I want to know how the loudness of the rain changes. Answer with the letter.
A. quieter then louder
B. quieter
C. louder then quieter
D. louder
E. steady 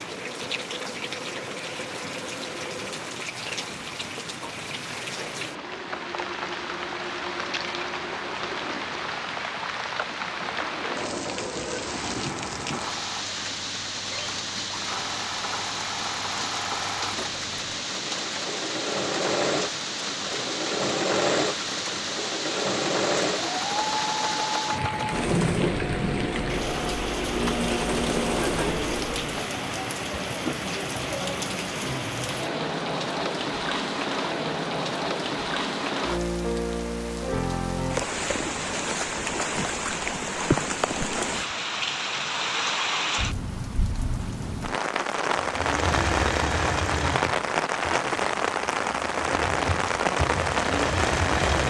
D.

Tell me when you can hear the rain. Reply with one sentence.
The rain can be heard from 0.0 to 51.6 s.